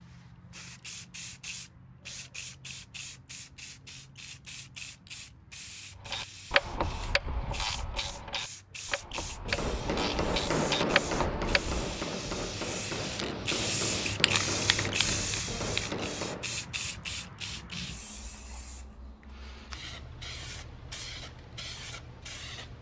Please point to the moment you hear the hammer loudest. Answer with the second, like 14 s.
11 s.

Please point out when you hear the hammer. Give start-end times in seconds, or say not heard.
9.3-16.6.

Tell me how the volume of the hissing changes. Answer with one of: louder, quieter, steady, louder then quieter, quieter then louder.
louder then quieter.